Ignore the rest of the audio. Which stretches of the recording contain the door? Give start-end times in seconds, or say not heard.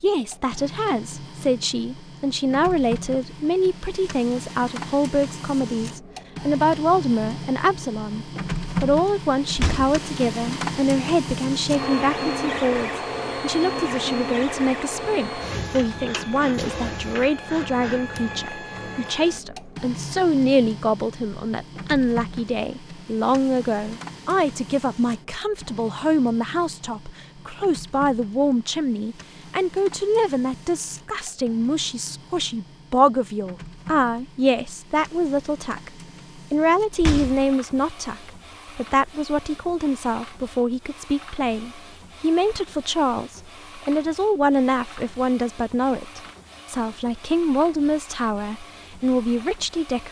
9.5-10.0, 36.9-37.5.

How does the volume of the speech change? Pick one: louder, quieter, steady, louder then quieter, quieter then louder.
steady.